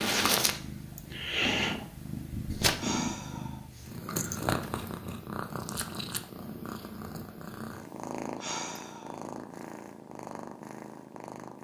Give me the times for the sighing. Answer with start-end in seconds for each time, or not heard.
2.8-3.6, 8.3-9.2.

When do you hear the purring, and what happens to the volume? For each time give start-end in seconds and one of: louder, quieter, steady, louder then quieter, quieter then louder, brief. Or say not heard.
0.0-11.5 quieter.